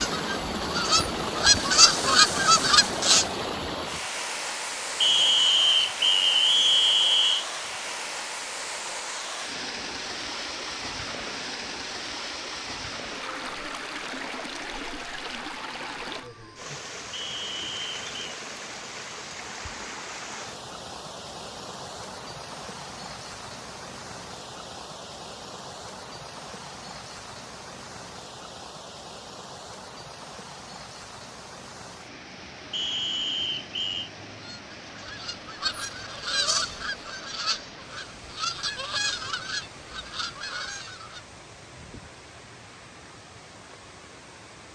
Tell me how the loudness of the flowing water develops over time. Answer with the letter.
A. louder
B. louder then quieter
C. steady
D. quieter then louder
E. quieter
E.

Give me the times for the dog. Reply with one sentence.
You can't hear the dog here.